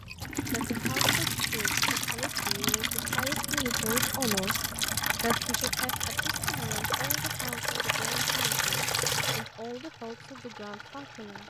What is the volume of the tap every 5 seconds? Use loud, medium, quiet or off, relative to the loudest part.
loud, loud, quiet.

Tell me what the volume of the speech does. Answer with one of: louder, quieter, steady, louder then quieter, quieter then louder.
louder then quieter.